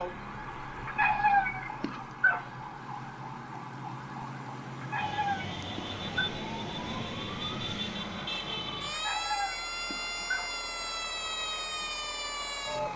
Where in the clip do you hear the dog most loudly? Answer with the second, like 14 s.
1 s.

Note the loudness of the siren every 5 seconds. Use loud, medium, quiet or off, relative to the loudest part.
medium, loud, loud.